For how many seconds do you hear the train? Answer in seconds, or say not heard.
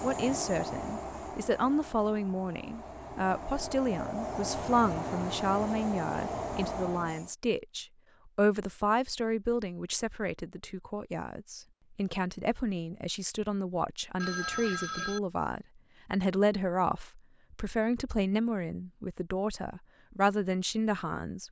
7 s.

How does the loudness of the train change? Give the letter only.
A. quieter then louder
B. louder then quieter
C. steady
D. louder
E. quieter
A.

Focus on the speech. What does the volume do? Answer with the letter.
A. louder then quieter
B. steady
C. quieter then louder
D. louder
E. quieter
B.